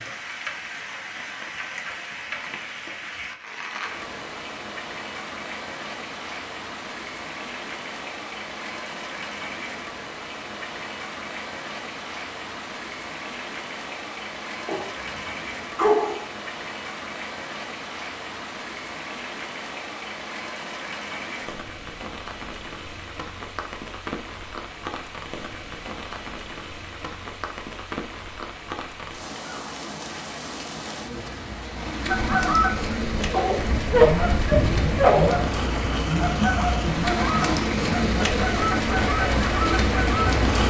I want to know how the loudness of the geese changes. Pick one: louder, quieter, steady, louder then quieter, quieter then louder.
steady.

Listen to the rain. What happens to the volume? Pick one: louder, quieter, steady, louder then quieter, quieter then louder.
louder.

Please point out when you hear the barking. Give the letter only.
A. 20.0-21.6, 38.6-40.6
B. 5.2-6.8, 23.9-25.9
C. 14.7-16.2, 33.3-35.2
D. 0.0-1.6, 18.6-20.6
C.